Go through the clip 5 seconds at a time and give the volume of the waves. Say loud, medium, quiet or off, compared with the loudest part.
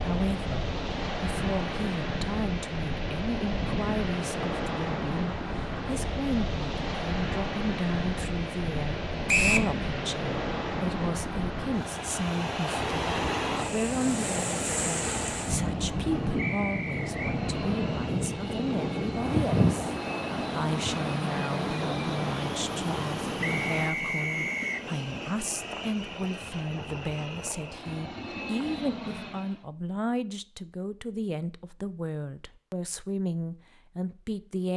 loud, loud, loud, loud, loud, off, off.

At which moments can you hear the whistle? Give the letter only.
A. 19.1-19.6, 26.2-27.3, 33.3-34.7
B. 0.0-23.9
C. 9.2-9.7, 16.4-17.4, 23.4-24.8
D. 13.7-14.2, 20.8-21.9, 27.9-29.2
C.